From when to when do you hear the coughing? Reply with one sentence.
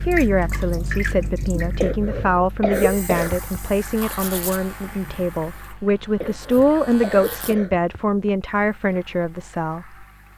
The coughing can be heard from 1.8 to 3.5 s and from 6.2 to 8.3 s.